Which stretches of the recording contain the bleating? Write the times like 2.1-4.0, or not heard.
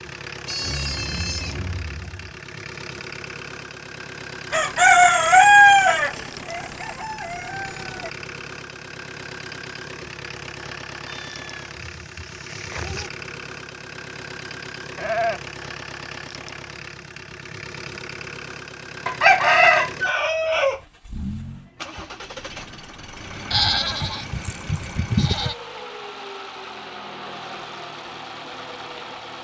0.5-2.3, 11.1-13.1, 14.9-15.4, 23.5-25.6.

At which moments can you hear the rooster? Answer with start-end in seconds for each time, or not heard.
4.5-8.1, 19.1-20.8.